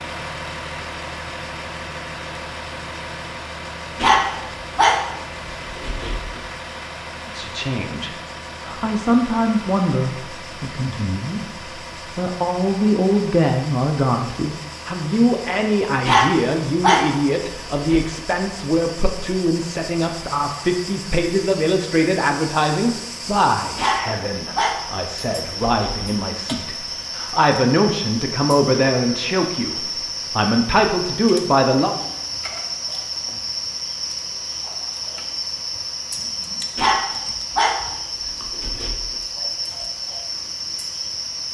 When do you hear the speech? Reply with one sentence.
The speech can be heard from 7.2 to 31.9 s.